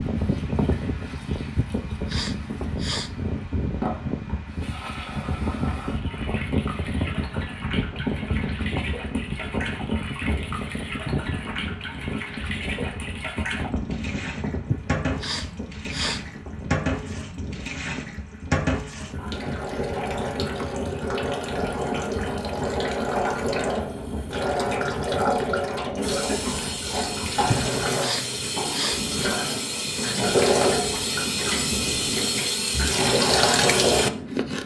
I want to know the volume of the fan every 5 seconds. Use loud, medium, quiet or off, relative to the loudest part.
loud, loud, loud, medium, medium, medium, medium.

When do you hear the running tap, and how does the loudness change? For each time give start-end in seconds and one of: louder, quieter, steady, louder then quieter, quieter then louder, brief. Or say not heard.
0.1-34.6 louder.